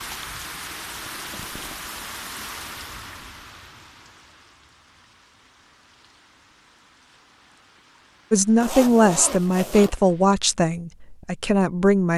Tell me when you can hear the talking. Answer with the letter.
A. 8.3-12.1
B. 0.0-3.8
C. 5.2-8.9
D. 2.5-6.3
A.